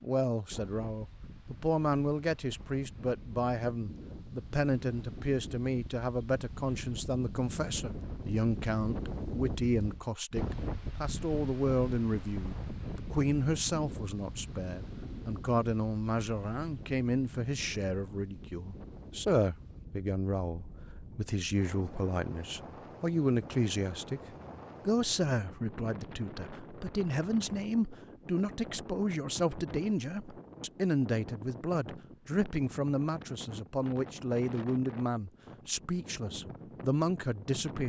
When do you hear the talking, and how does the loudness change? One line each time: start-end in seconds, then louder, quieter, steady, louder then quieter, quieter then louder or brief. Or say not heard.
0.0-24.2 steady
24.9-37.8 steady.